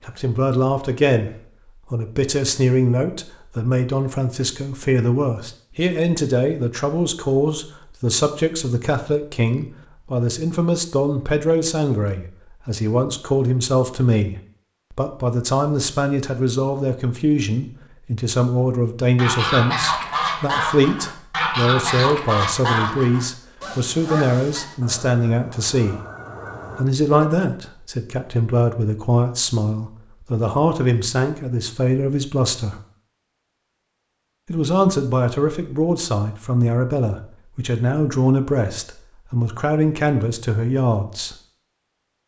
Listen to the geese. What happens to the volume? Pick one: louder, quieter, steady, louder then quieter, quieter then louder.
quieter.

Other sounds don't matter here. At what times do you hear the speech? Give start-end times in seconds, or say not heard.
0.1-1.3, 1.9-26.0, 26.8-32.8, 34.5-41.4.